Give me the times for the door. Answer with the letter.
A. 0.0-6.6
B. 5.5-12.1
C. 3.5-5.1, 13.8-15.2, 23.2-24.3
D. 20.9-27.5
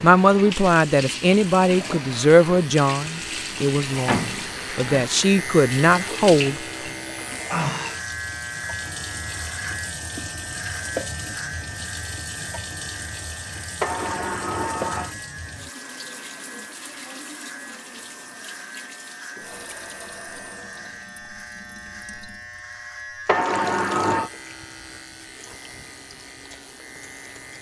C.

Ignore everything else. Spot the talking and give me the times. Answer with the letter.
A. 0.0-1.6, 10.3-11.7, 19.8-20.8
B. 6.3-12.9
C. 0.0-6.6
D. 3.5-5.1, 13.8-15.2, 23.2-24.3
C.